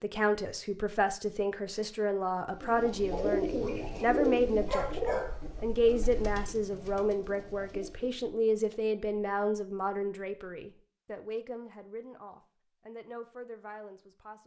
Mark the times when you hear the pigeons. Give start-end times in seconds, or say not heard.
2.6-8.3.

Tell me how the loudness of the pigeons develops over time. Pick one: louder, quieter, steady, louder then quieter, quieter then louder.
quieter.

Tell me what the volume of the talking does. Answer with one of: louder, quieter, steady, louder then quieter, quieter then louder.
quieter.